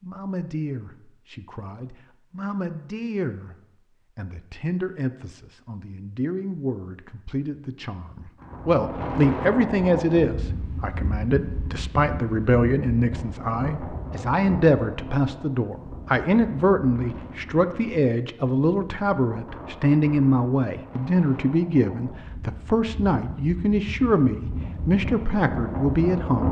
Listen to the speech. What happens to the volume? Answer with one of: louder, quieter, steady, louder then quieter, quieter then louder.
louder.